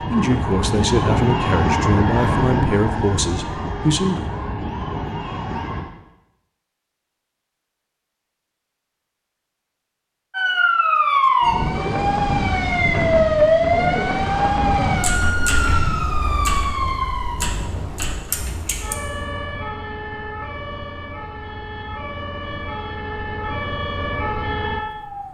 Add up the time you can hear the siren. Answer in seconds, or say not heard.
21 s.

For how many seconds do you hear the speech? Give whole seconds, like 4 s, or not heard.
4 s.